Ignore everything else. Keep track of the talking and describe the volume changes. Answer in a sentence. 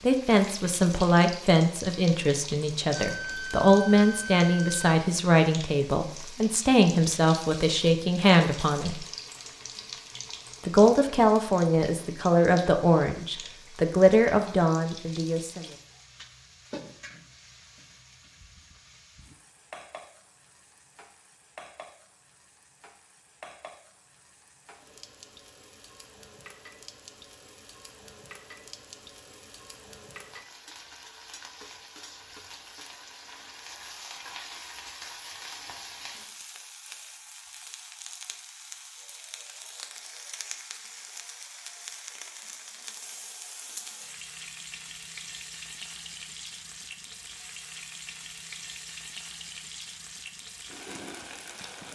The loudness of the talking stays about the same.